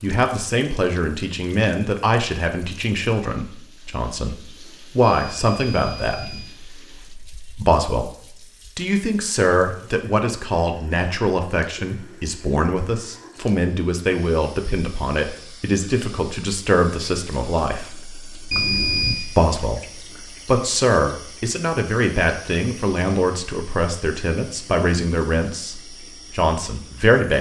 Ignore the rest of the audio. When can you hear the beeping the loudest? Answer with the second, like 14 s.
19 s.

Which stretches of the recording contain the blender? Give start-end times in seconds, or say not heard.
not heard.